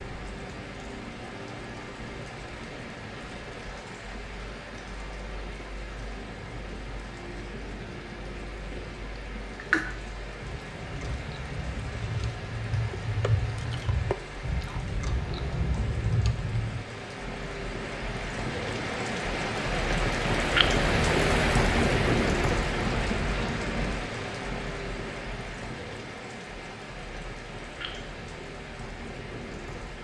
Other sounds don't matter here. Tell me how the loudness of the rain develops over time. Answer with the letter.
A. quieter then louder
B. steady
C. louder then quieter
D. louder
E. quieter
C.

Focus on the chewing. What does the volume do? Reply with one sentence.
The loudness of the chewing goes up.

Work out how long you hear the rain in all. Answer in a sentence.
You can hear the rain for 30 seconds altogether.